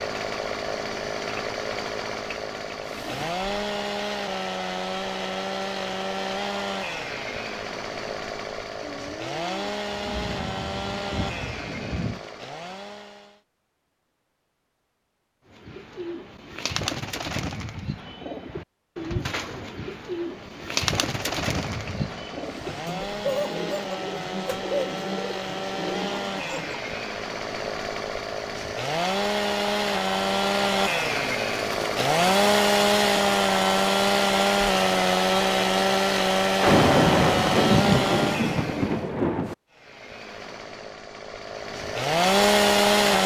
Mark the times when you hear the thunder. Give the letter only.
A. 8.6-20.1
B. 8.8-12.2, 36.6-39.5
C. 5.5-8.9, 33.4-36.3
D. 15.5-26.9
B.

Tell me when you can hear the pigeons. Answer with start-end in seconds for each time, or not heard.
15.5-26.9.